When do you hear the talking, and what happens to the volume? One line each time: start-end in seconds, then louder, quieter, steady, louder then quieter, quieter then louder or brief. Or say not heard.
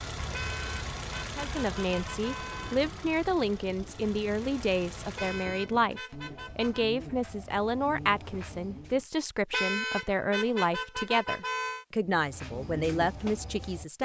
1.4-14.0 steady.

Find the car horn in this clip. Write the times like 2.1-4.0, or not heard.
0.3-2.8, 5.2-6.8, 9.5-11.8.